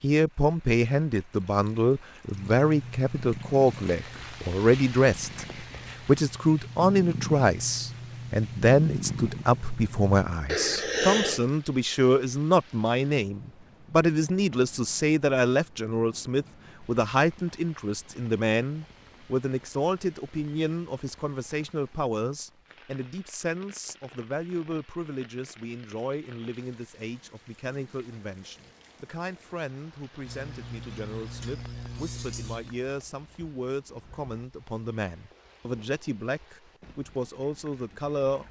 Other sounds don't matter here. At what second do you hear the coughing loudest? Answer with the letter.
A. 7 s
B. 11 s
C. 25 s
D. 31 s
B.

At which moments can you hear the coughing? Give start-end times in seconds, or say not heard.
10.4-11.4, 30.2-32.8.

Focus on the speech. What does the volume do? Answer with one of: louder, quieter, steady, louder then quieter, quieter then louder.
quieter.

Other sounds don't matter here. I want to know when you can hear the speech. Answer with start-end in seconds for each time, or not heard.
0.0-38.4.